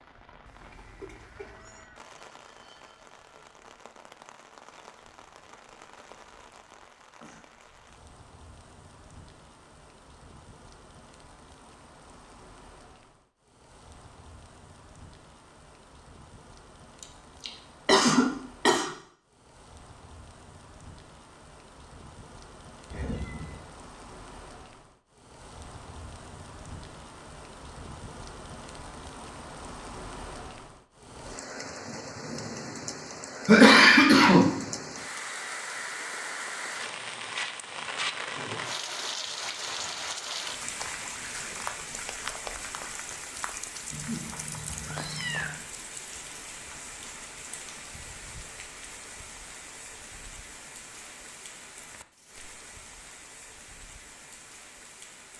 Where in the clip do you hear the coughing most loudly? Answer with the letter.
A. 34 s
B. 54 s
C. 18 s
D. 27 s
A.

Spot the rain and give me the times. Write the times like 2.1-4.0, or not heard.
0.0-55.3.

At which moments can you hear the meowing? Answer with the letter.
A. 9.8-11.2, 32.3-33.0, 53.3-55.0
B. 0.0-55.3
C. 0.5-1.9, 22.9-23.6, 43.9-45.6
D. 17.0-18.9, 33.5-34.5
C.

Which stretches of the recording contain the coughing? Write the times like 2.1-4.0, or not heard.
17.0-18.9, 33.5-34.5.